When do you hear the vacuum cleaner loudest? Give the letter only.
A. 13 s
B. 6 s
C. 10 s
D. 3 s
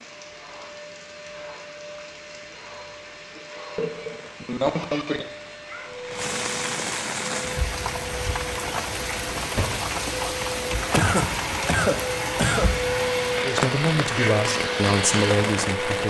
A.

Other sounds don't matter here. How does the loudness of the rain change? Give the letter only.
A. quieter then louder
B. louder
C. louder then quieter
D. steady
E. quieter
B.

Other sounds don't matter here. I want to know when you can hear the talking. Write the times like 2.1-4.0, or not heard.
13.4-16.0.